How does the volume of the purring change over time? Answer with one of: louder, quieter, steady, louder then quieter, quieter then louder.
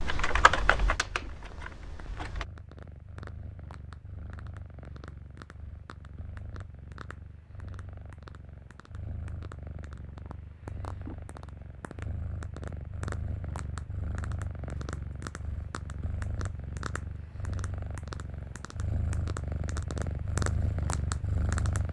louder.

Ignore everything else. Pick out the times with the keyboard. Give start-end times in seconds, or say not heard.
0.0-2.5.